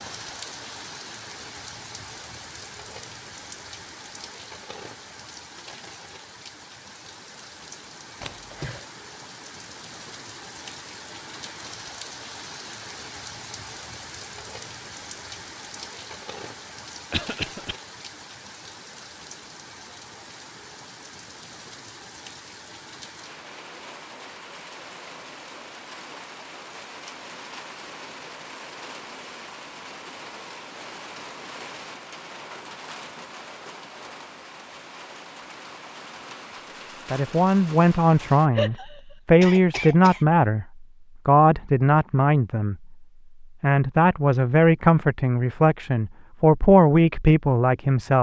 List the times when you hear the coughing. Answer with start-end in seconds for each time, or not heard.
8.2-8.8, 17.1-17.8, 38.5-40.2.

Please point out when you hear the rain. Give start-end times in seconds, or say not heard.
0.0-38.5.